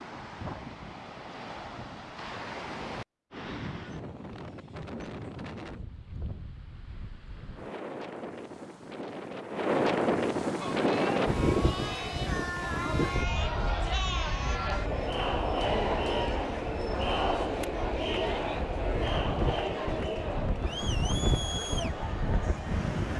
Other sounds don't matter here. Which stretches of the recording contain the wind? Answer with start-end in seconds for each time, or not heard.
0.0-23.1.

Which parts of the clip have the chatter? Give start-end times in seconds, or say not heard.
10.6-23.1.